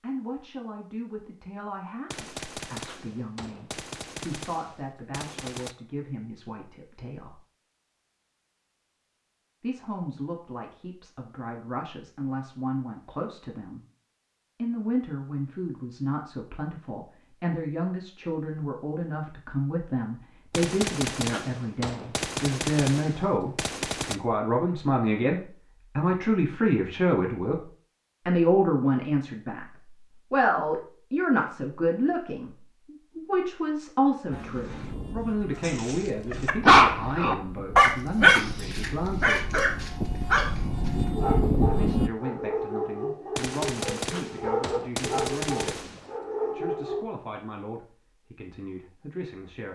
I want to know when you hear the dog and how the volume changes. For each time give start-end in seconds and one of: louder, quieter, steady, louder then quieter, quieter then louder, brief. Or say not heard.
35.6-47.0 quieter.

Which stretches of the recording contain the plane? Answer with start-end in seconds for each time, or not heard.
34.3-42.1.